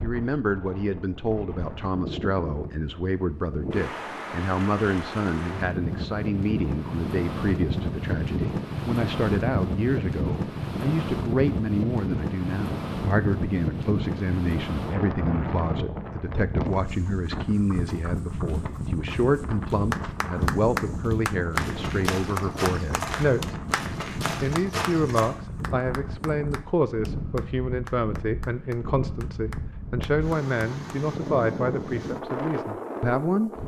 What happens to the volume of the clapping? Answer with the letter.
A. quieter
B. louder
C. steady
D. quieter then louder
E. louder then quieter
A.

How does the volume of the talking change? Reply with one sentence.
The volume of the talking stays about the same.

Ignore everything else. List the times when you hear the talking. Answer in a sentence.
The talking can be heard from 0.0 to 23.6 s and from 24.4 to 33.5 s.